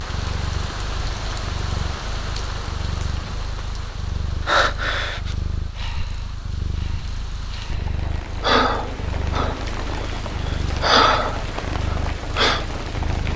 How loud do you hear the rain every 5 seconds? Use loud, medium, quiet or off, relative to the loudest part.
loud, medium, loud.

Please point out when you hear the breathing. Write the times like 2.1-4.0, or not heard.
4.5-9.6, 10.4-12.7.